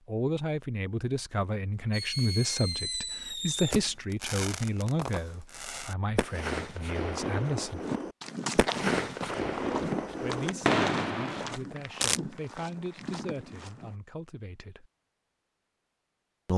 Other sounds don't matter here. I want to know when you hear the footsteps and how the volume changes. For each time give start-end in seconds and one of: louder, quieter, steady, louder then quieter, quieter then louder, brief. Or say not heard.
7.8-13.9 quieter.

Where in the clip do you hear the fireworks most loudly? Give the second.
11 s.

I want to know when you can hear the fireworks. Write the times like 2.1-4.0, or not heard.
1.9-12.2.